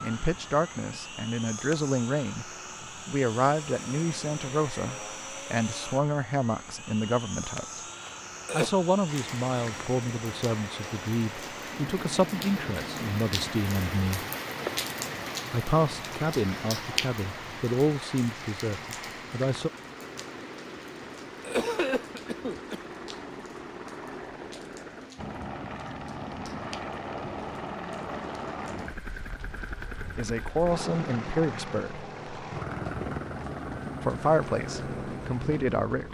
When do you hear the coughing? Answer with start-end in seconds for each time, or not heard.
8.1-8.7, 21.4-22.8.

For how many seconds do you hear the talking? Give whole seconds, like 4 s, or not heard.
22 s.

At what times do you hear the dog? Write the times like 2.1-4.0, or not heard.
not heard.